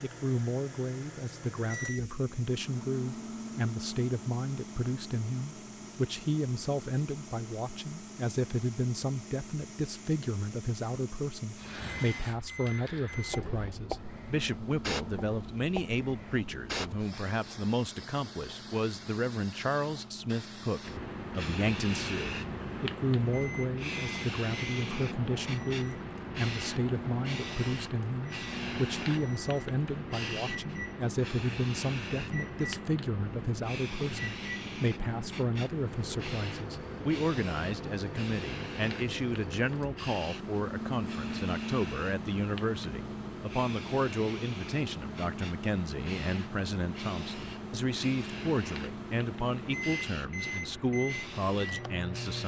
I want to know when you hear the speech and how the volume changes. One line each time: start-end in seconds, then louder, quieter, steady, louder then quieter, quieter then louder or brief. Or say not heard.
0.0-52.4 steady.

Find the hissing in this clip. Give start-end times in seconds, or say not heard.
0.0-52.4.